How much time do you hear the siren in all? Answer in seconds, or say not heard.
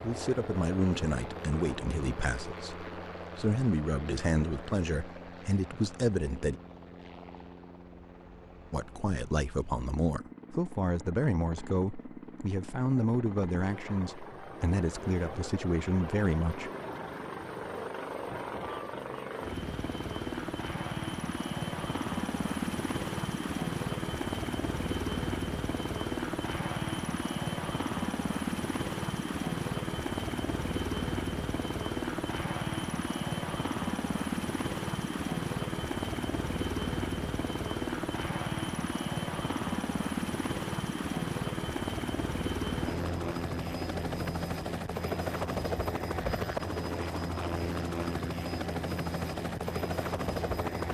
not heard.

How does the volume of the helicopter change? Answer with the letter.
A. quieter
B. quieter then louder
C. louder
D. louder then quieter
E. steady
C.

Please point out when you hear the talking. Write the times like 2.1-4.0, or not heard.
0.0-6.5, 8.7-16.7.